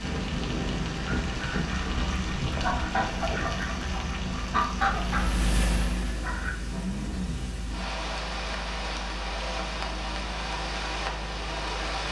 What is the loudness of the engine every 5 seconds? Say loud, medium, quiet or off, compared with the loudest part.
loud, loud, medium.